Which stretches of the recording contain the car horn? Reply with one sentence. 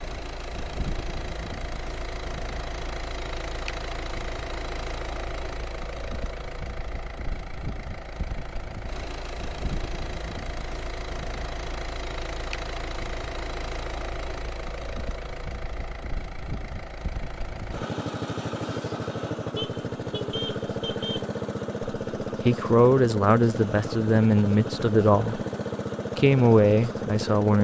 The car horn can be heard from 19.6 to 21.2 s.